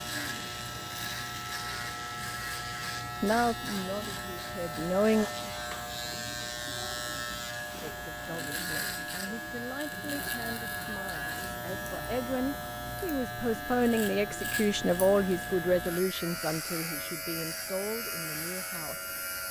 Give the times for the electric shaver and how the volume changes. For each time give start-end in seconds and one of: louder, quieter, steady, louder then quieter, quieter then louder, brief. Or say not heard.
0.0-19.4 steady.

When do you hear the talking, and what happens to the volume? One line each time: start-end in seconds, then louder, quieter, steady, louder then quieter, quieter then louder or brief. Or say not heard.
3.2-5.2 brief
7.8-19.1 louder then quieter.